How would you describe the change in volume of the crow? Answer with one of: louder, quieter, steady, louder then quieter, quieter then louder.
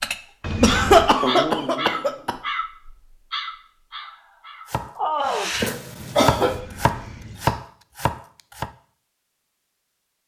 quieter then louder.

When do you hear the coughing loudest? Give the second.
1 s.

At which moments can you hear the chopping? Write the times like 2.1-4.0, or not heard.
4.7-8.7.